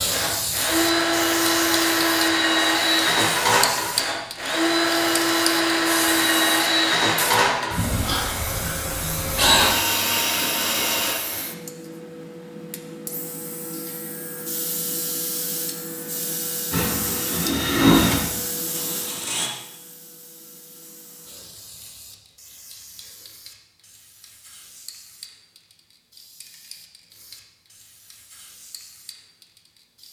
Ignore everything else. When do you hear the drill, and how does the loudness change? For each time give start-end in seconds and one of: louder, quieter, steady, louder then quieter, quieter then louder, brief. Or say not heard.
0.0-11.2 steady
16.7-19.5 brief.